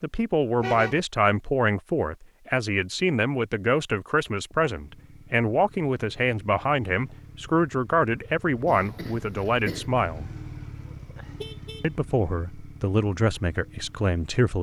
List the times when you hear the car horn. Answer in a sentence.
You can hear the car horn from 0.6 to 1.1 s and from 10.8 to 11.8 s.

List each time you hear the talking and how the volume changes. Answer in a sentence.
The talking can be heard from 0.0 to 10.3 s, at a steady volume; and briefly from 11.8 to 14.5 s.